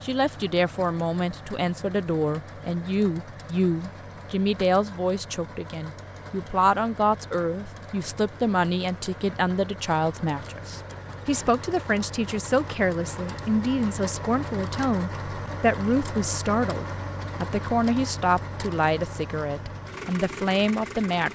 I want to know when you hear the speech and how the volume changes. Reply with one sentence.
The speech can be heard from 0.0 to 21.2 s, at a steady volume.